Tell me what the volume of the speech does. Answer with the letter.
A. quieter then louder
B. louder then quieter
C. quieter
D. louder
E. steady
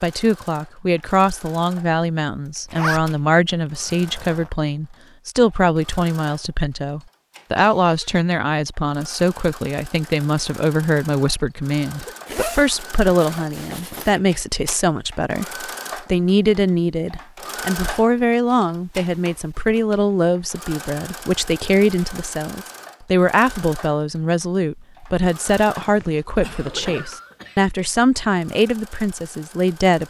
E.